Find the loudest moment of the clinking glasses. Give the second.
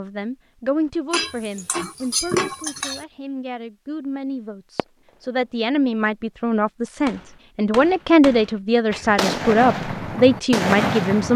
2 s.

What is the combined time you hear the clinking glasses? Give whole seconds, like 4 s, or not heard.
2 s.